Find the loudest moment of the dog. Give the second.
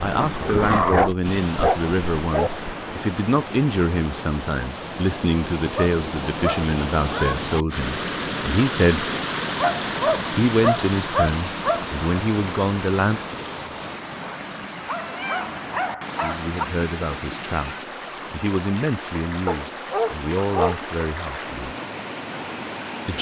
1 s.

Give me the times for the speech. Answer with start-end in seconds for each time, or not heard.
0.0-9.1, 10.3-13.2, 16.2-21.8.